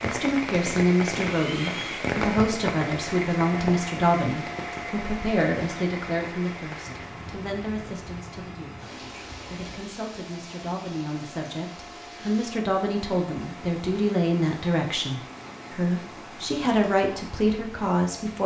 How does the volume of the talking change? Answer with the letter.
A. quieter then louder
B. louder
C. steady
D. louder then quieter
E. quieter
A.